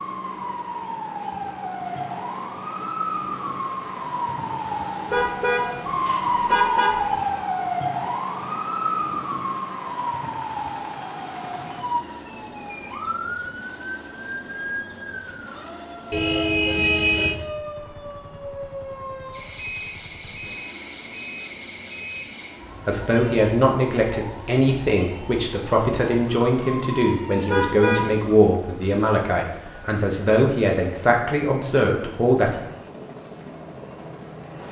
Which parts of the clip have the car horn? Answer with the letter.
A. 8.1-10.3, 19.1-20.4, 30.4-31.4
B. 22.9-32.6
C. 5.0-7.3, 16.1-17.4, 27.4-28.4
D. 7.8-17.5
C.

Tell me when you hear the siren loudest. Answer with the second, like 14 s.
7 s.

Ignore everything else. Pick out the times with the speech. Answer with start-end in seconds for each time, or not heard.
22.9-32.6.